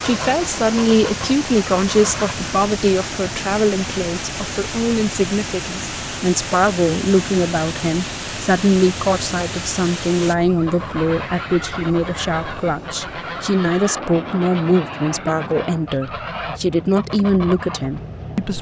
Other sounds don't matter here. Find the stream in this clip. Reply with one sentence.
The stream can be heard from 0.0 to 10.3 s.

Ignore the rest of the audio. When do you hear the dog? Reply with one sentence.
You can't hear the dog here.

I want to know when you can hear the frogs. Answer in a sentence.
You can't hear the frogs here.